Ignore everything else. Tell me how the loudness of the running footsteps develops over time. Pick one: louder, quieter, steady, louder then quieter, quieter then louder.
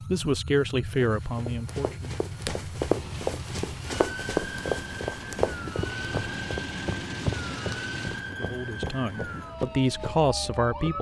quieter.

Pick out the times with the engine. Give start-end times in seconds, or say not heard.
2.8-8.3.